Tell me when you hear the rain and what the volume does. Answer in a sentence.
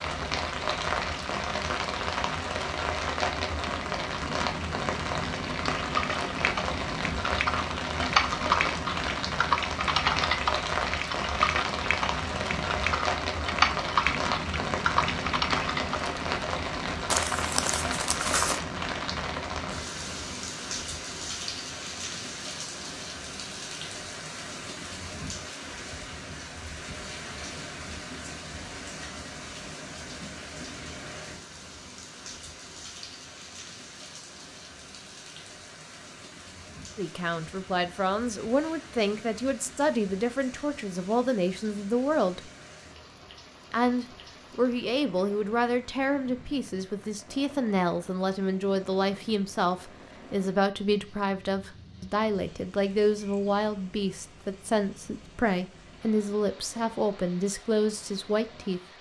You can hear the rain from 0.0 to 58.9 s, getting quieter.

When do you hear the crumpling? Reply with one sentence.
The crumpling can be heard from 17.1 to 18.6 s.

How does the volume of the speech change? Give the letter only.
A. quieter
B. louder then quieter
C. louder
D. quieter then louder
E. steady
E.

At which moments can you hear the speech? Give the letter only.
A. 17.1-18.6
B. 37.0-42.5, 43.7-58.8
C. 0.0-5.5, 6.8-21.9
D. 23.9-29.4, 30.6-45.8
B.